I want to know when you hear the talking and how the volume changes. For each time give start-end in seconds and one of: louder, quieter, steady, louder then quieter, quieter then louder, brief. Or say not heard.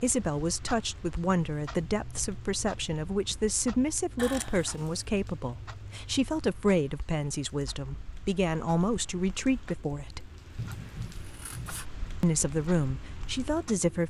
0.0-10.3 steady
12.2-14.0 brief.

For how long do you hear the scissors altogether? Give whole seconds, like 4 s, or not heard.
2 s.